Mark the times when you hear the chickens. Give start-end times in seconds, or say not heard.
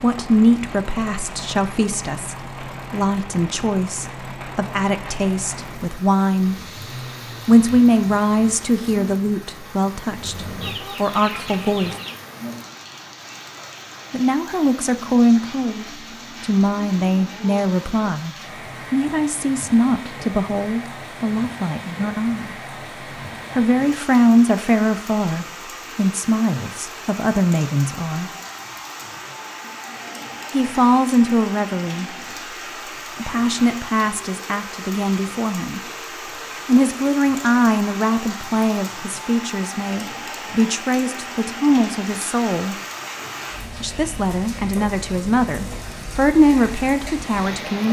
10.6-12.2.